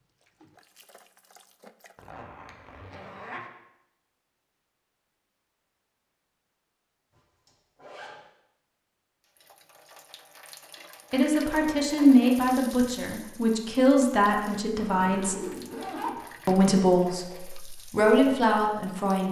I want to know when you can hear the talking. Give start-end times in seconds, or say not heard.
11.1-15.3, 16.4-19.2.